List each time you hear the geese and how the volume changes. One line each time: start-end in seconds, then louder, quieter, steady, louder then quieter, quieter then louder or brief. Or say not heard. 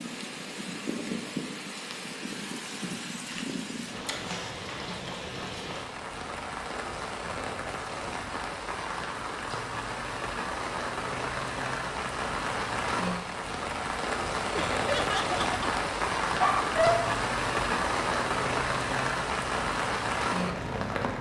not heard.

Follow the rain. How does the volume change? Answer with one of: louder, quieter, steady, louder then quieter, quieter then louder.
louder.